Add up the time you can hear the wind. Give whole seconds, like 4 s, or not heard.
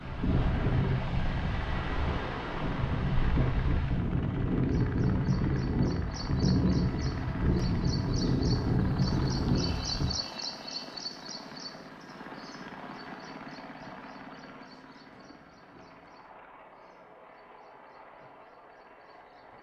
10 s.